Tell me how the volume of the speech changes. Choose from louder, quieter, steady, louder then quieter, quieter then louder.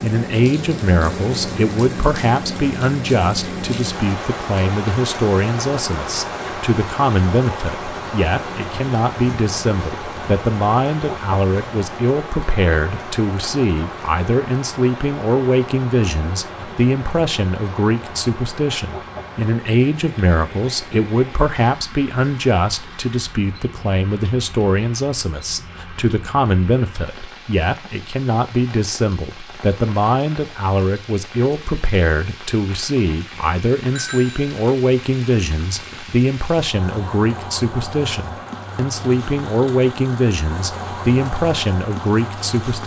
steady.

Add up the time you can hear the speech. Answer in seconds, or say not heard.
43 s.